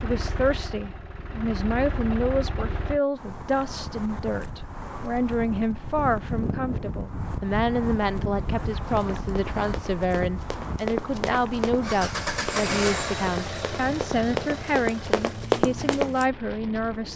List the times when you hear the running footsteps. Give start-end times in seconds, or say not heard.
8.8-16.2.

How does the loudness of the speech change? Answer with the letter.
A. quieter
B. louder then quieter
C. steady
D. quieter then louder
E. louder
C.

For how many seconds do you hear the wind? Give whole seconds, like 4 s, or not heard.
14 s.